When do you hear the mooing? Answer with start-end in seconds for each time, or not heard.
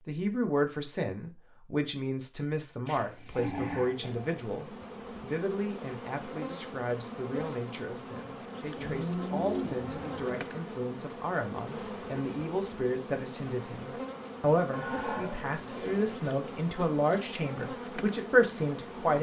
2.9-4.5, 8.8-10.4, 14.7-16.1.